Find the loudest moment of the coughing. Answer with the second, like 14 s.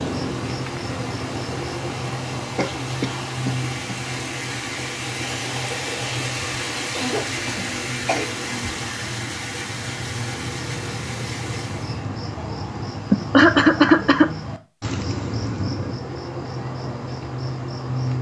14 s.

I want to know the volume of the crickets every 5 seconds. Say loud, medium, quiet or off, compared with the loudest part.
loud, medium, loud, loud.